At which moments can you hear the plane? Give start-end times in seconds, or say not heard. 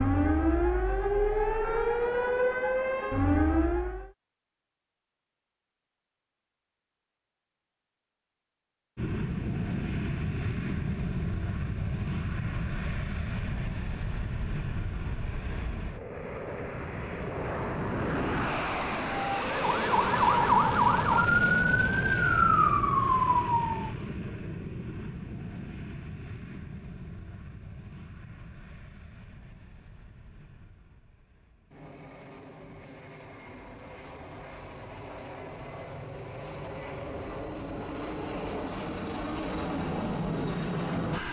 8.9-41.2.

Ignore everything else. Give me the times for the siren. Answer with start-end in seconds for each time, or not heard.
0.0-4.1, 19.1-23.9.